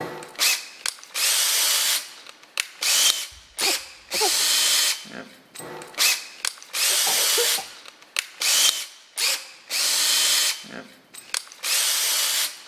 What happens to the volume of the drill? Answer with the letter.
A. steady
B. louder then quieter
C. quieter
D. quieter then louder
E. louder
A.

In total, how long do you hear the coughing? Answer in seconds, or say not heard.
2 s.